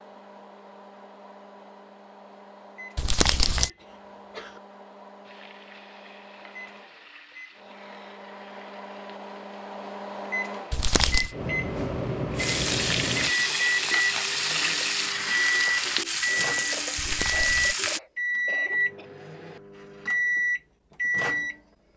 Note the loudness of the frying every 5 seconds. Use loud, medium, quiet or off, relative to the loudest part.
off, quiet, loud, loud, off.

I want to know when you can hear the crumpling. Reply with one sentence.
The crumpling can be heard from 3.0 to 3.7 s, from 10.7 to 11.3 s and from 16.9 to 17.8 s.